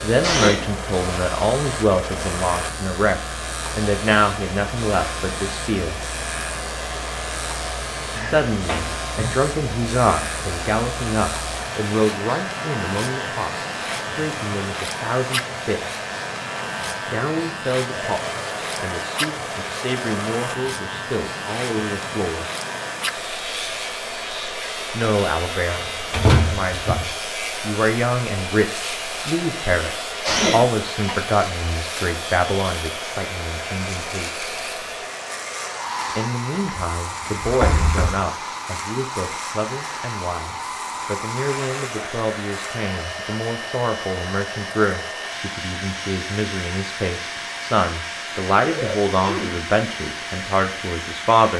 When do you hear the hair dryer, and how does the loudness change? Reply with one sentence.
You can hear the hair dryer from 0.0 to 51.5 s, at a steady volume.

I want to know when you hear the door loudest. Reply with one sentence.
The volume of the door peaks at 26 seconds.